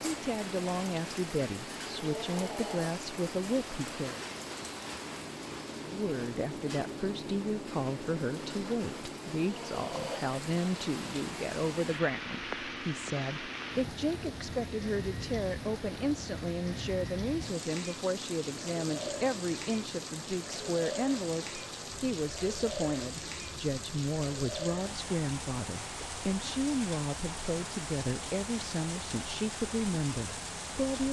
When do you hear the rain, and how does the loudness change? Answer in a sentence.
The rain can be heard from 0.0 to 31.0 s, at a steady volume.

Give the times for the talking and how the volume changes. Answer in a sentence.
You can hear the talking from 0.0 to 4.2 s, at a steady volume; and from 5.8 to 31.0 s, at a steady volume.